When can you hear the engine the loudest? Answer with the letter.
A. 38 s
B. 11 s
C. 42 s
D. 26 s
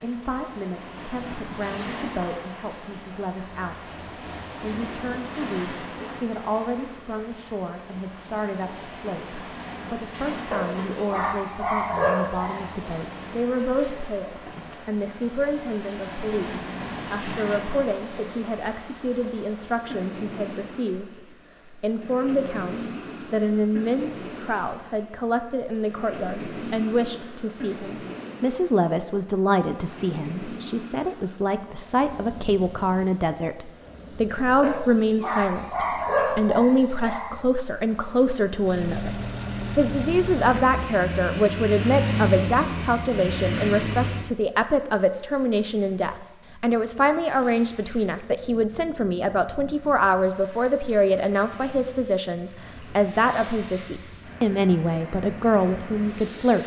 C.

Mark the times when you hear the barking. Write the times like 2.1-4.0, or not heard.
10.5-13.0, 34.6-37.5.